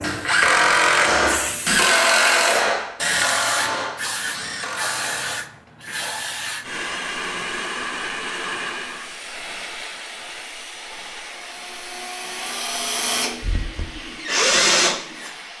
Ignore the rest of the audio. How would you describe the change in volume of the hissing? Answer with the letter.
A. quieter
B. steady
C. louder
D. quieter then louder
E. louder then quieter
A.